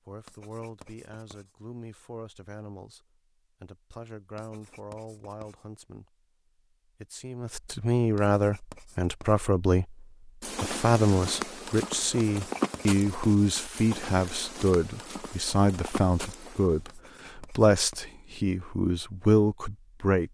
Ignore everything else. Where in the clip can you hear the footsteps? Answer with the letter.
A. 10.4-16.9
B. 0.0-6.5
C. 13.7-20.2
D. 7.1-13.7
A.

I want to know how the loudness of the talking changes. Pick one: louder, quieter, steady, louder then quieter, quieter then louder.
louder.